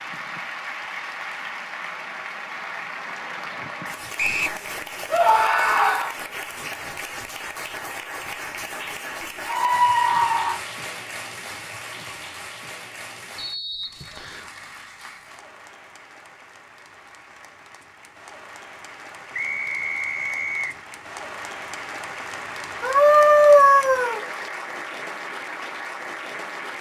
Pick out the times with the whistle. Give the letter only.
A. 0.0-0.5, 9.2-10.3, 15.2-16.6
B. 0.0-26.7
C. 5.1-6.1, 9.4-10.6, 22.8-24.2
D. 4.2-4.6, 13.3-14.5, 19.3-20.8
D.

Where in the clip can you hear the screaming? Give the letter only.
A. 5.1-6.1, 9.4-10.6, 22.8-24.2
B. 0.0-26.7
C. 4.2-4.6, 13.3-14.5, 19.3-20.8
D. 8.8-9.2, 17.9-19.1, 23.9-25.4
A.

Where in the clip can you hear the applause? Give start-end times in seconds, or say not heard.
0.0-26.7.